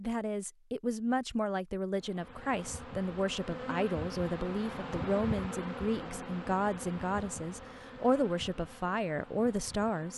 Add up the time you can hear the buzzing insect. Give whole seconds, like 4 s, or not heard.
8 s.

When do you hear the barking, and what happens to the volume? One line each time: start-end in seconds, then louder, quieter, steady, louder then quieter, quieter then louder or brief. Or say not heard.
not heard.